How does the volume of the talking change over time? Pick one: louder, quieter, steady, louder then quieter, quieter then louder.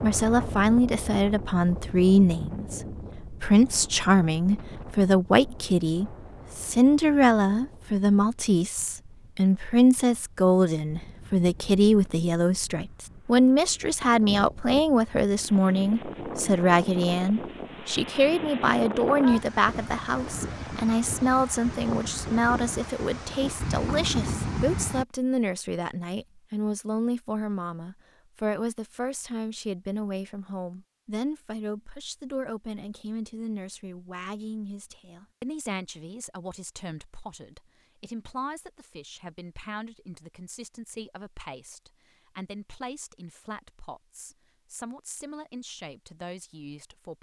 quieter.